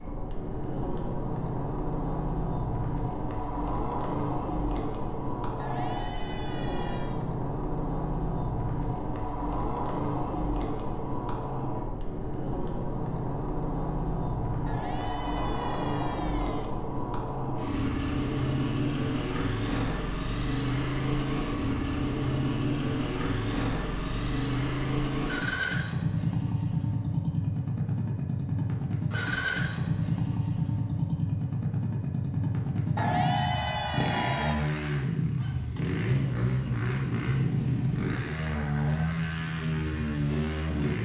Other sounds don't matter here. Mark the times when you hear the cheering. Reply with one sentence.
You can hear the cheering from 5.5 to 7.2 s, from 14.7 to 16.6 s and from 33.0 to 34.6 s.